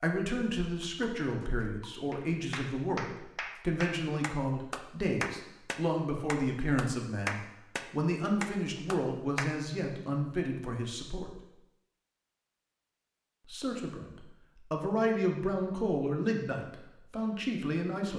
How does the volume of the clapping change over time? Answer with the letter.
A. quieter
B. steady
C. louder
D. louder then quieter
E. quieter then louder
C.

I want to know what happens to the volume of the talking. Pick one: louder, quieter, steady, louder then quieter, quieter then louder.
steady.